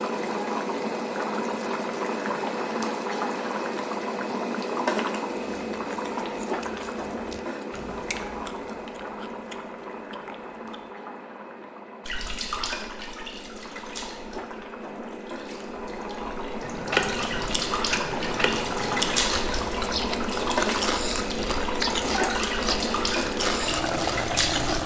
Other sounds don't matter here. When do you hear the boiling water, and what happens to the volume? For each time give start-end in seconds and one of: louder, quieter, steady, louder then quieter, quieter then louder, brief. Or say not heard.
0.0-24.8 quieter then louder.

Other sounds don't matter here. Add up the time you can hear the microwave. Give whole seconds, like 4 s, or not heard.
not heard.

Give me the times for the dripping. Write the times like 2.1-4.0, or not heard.
12.1-24.8.